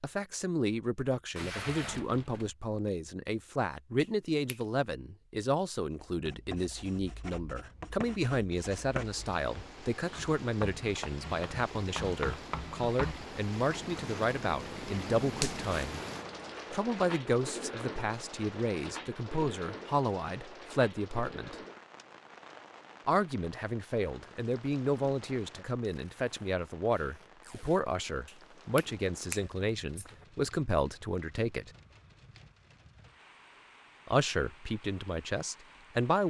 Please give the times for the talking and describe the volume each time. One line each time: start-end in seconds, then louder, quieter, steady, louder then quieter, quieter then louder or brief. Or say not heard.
0.0-16.0 steady
16.7-21.6 steady
23.1-31.7 steady
34.0-36.2 brief.